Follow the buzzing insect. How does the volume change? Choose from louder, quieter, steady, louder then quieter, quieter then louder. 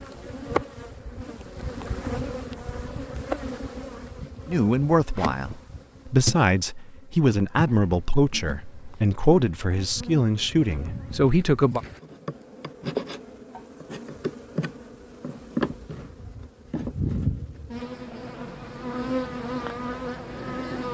quieter then louder.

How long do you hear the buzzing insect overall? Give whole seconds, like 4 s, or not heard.
21 s.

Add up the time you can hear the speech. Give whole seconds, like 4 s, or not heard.
7 s.